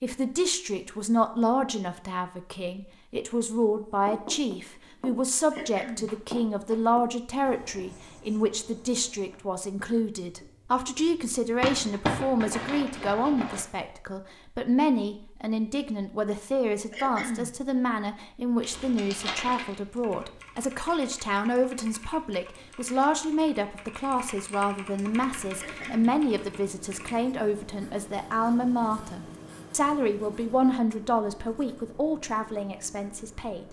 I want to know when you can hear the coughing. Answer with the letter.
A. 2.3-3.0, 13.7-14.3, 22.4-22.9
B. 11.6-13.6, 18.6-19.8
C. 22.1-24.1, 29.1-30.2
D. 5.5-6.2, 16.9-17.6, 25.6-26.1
D.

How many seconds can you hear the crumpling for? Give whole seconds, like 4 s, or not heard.
3 s.